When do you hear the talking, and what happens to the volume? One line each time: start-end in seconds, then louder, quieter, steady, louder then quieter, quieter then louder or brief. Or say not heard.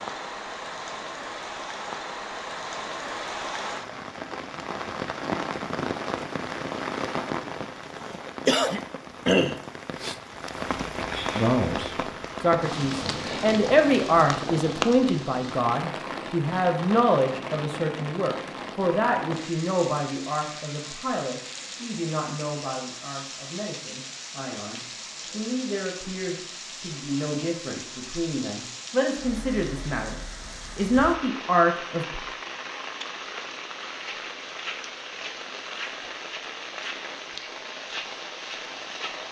11.3-32.2 quieter then louder.